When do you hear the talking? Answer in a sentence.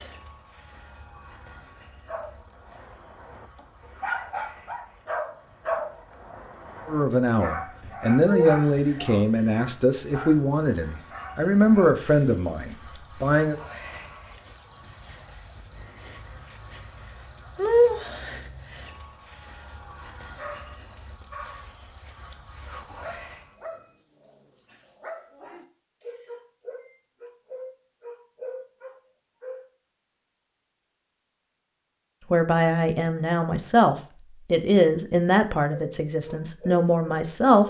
The talking can be heard from 6.8 to 13.6 s and from 32.3 to 37.6 s.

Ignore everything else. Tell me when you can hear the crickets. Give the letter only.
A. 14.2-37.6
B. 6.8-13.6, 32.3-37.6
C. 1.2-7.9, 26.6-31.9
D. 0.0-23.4
D.